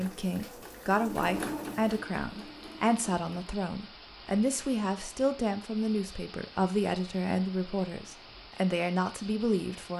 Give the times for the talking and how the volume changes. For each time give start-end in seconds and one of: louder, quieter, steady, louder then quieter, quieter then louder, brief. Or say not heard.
0.0-9.9 steady.